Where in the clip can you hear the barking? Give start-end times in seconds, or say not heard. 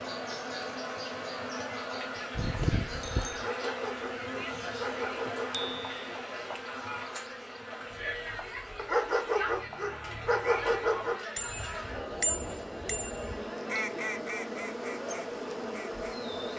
3.3-5.8, 8.8-11.2.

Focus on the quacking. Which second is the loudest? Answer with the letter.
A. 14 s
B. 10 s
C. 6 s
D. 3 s
A.